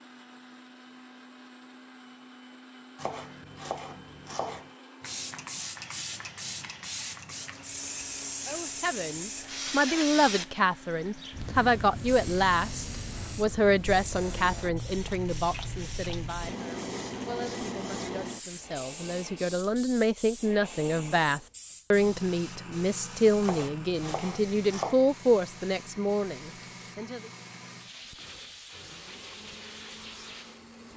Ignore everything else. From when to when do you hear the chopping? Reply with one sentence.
You can hear the chopping from 3.0 to 4.7 s and from 23.4 to 24.9 s.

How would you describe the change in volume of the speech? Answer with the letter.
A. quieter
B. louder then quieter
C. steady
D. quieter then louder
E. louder
D.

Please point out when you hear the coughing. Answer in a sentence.
The coughing can't be heard in this clip.